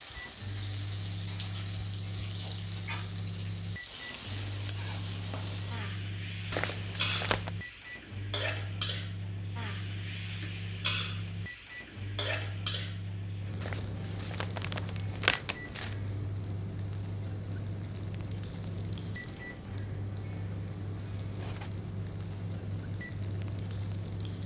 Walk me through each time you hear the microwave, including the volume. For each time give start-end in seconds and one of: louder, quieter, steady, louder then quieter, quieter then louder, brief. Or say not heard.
0.0-24.4 steady.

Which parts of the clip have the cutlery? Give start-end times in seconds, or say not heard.
21.4-21.8.